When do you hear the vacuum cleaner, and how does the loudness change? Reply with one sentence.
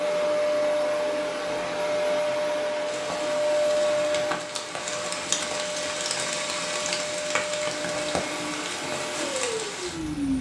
You can hear the vacuum cleaner from 0.0 to 10.3 s, getting quieter.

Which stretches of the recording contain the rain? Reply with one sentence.
The rain can be heard from 2.9 to 10.3 s.